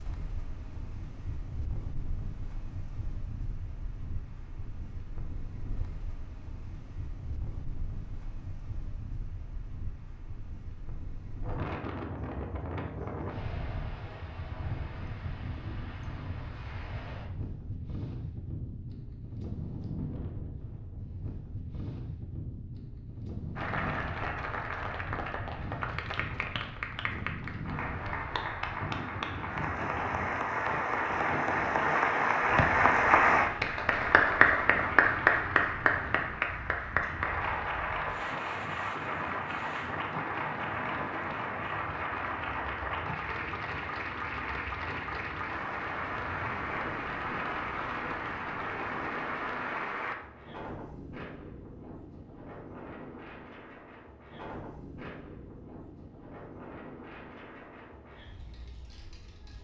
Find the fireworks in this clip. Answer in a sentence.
The fireworks can't be heard in this clip.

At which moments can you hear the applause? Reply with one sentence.
You can hear the applause from 23.6 to 50.1 s.